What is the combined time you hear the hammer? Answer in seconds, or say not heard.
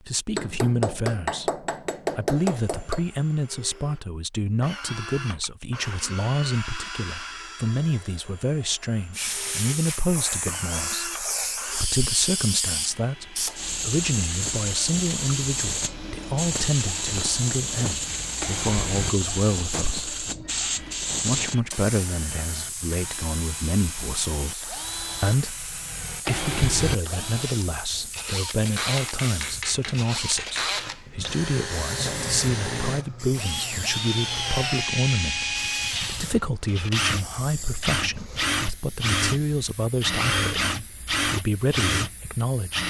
5 s.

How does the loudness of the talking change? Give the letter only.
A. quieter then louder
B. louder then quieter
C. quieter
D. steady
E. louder
D.